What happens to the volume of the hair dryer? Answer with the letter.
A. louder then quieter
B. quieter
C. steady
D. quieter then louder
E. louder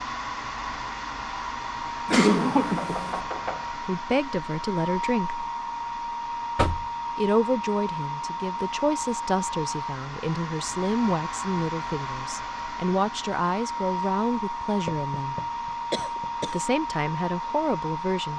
C.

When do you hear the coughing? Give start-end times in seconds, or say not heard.
2.0-3.2, 15.9-16.6.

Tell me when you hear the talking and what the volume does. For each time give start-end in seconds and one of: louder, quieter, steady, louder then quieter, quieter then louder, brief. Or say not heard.
3.8-5.5 brief
7.2-15.3 steady
16.4-18.3 brief.